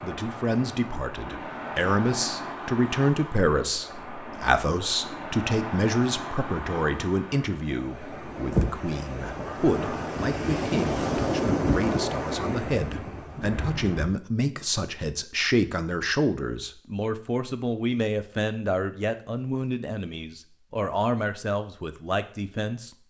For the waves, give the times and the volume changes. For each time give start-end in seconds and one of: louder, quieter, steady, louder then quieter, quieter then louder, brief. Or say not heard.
0.0-14.1 louder.